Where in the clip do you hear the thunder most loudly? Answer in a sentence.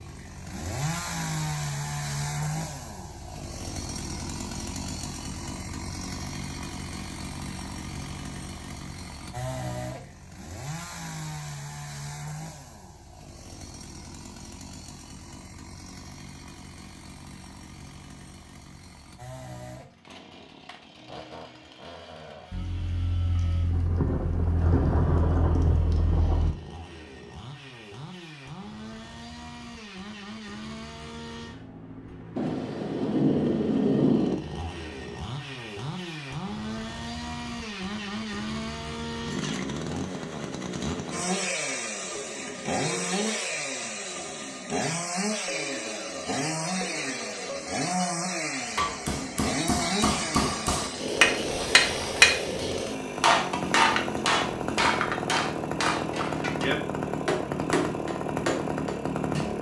The volume of the thunder peaks at 34 seconds.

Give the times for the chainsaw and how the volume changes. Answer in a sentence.
The chainsaw can be heard from 0.0 to 59.5 s, getting quieter then louder.